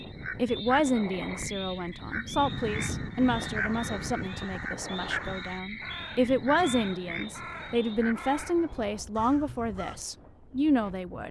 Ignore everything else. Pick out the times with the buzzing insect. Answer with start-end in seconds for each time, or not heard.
not heard.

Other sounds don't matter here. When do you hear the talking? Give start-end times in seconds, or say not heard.
0.3-11.2.